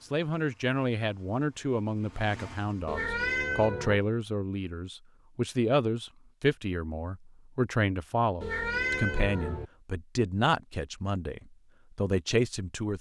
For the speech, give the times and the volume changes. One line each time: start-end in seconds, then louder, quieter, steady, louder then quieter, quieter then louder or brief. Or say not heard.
0.1-12.9 steady.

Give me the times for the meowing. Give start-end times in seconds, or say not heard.
2.9-4.0, 8.4-9.7.